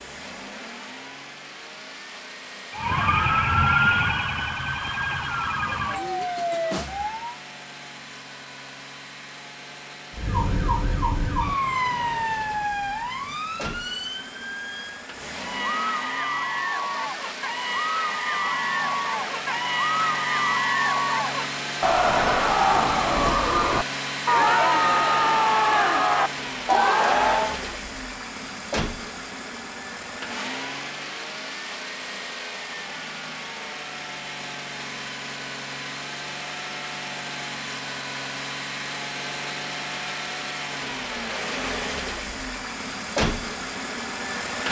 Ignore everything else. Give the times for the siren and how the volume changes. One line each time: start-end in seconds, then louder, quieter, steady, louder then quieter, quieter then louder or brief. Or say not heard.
2.7-7.4 quieter
10.2-15.1 quieter.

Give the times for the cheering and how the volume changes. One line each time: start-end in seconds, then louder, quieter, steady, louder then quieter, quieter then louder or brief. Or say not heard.
15.3-27.6 louder.